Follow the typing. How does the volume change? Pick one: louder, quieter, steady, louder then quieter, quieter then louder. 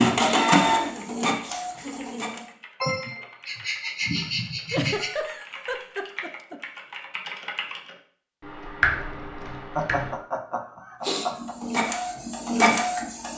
louder.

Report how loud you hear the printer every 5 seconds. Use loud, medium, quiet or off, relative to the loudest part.
loud, off, loud.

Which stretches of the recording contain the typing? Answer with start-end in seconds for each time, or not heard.
0.9-10.2.